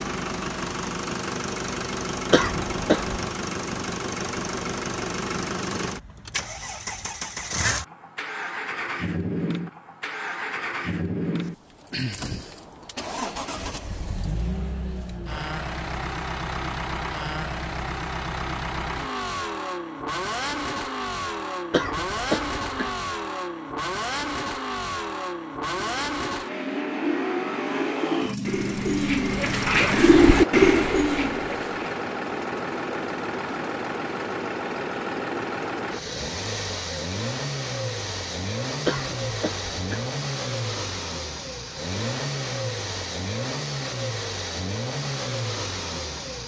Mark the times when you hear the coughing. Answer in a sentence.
The coughing can be heard from 2.3 to 3.2 s, from 21.7 to 22.9 s and from 38.9 to 40.0 s.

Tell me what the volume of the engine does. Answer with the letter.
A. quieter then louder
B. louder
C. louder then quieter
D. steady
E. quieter
D.